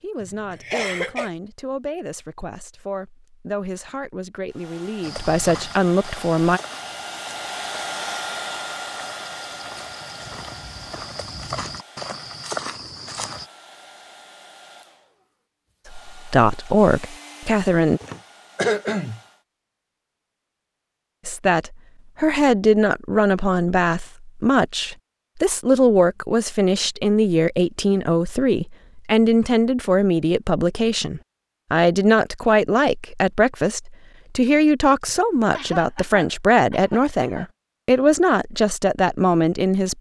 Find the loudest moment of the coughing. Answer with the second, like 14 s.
19 s.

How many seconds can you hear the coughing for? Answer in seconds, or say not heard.
5 s.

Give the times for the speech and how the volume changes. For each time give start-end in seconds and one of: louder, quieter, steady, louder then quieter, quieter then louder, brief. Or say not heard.
0.0-6.6 louder
16.1-18.0 brief
21.2-39.9 steady.